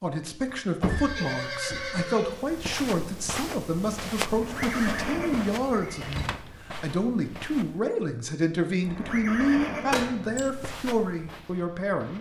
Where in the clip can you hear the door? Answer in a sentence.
The door can be heard from 0.5 to 2.0 s, from 6.0 to 6.5 s and from 9.9 to 10.5 s.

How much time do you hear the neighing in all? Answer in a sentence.
The neighing can be heard for 5 seconds in total.